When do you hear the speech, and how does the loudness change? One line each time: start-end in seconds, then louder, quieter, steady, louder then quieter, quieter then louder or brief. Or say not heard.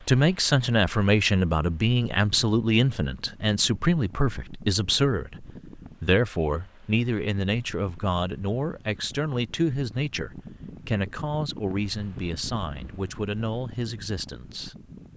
0.1-14.8 quieter.